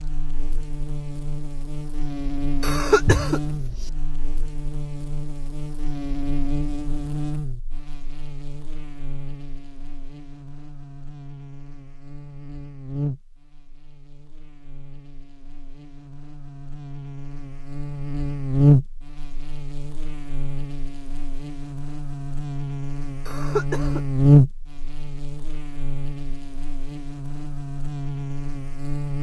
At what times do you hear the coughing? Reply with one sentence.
You can hear the coughing from 2.6 to 3.9 s and from 23.2 to 24.2 s.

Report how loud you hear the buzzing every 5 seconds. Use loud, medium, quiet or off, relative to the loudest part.
medium, medium, quiet, loud, loud, medium.